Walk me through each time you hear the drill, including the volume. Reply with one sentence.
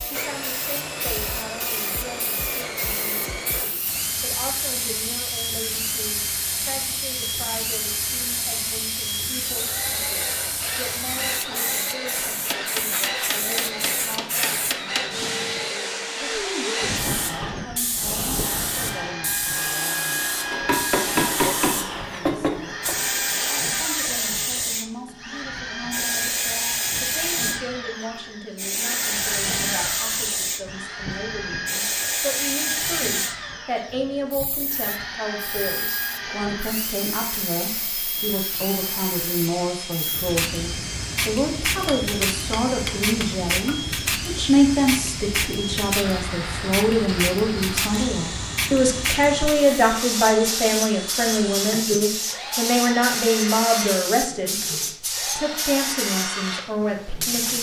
You can hear the drill from 0.0 to 57.5 s, at a steady volume.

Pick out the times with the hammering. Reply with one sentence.
You can hear the hammering from 12.5 to 15.1 s, from 20.5 to 23.1 s and from 41.8 to 43.8 s.